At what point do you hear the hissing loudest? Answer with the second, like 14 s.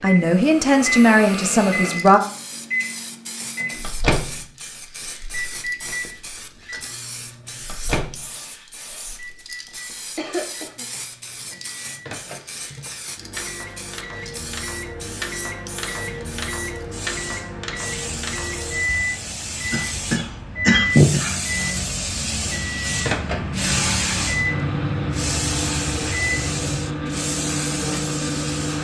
24 s.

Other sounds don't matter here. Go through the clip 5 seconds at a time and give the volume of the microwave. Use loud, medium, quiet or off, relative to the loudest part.
loud, medium, medium, loud, loud, loud.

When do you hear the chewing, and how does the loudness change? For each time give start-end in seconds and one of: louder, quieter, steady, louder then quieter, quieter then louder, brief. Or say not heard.
not heard.